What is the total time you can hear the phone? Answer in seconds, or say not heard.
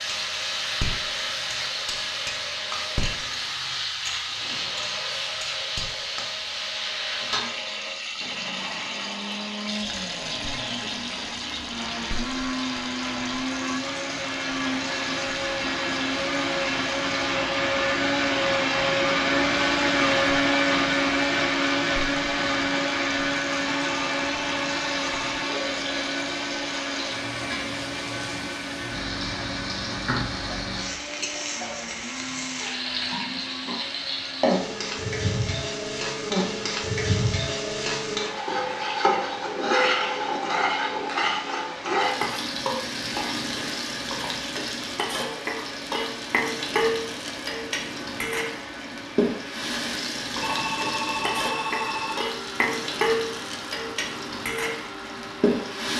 5 s.